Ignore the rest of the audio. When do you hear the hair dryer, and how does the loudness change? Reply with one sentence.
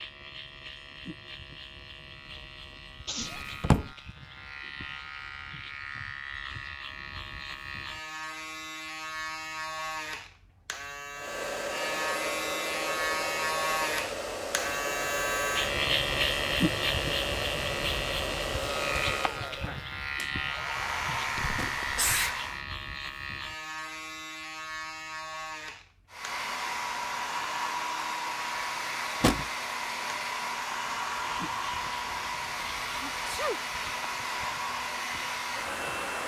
You can hear the hair dryer from 11.2 to 22.6 s, at a steady volume; and from 26.1 to 36.2 s, at a steady volume.